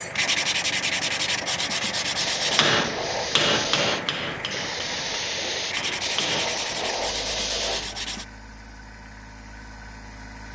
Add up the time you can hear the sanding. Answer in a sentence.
The sanding can be heard for 5 seconds in total.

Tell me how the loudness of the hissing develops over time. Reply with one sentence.
The loudness of the hissing stays about the same.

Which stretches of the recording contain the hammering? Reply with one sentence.
You can hear the hammering from 2.5 to 6.5 s.